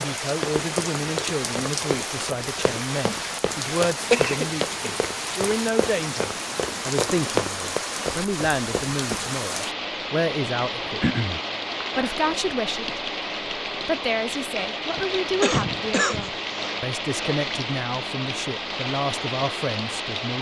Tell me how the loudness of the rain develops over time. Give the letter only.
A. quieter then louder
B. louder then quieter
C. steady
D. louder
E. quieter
C.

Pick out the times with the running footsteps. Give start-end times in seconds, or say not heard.
0.0-9.2.